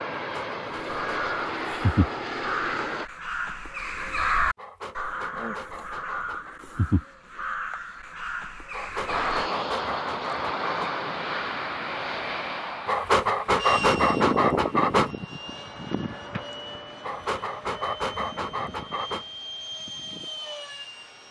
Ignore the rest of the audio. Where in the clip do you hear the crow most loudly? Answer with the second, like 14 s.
4 s.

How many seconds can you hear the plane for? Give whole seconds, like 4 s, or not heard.
15 s.